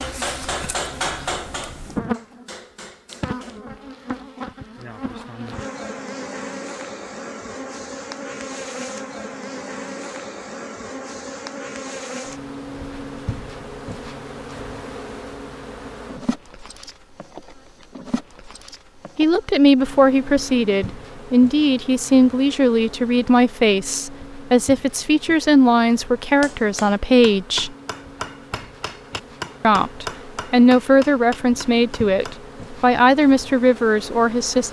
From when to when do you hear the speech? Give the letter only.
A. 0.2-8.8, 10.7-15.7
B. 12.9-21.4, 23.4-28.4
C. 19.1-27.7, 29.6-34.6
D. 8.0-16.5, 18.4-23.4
C.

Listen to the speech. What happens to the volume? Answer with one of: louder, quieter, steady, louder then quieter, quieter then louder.
steady.